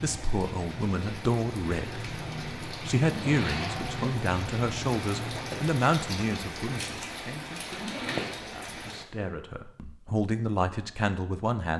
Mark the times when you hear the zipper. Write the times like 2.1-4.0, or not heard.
3.0-4.1, 7.7-8.4.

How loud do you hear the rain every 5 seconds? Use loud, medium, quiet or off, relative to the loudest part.
loud, loud, off.